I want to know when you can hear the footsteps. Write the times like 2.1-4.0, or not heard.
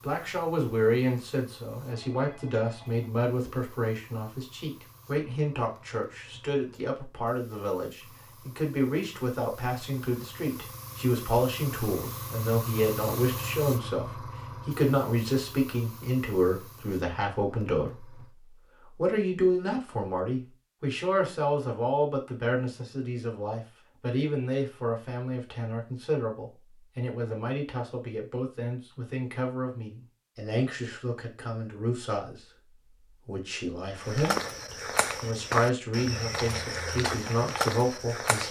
34.0-38.4.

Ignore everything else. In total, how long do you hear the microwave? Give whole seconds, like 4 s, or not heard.
not heard.